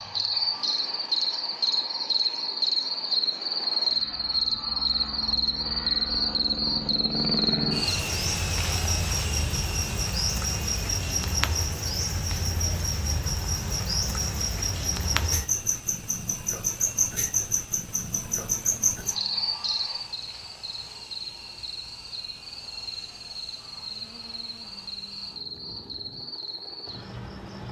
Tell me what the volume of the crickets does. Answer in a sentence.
The loudness of the crickets goes down.